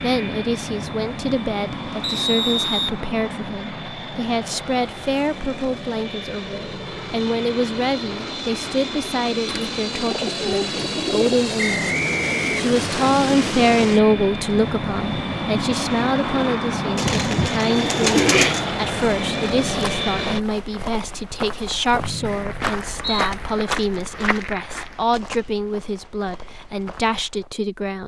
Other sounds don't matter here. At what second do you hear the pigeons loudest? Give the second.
18 s.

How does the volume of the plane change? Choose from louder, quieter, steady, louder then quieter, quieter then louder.
louder.